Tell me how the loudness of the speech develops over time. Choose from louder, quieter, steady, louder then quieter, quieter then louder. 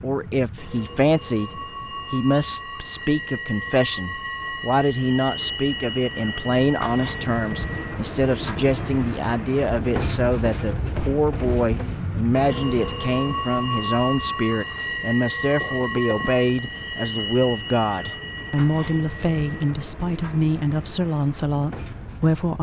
steady.